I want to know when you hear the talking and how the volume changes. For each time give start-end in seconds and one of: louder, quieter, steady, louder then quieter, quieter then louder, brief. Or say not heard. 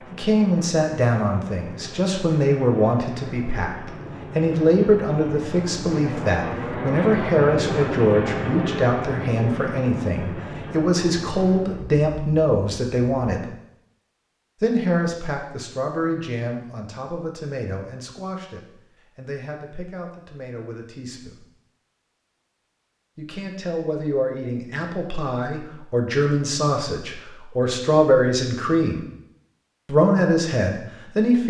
0.1-13.5 steady
14.6-21.4 quieter
23.1-29.1 louder
29.9-31.4 brief.